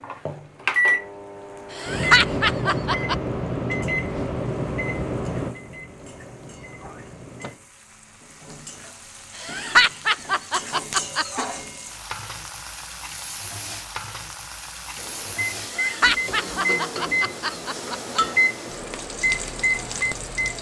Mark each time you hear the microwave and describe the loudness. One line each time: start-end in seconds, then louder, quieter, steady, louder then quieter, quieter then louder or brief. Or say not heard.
0.0-7.7 quieter
14.9-20.5 quieter then louder.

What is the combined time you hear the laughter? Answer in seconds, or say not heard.
6 s.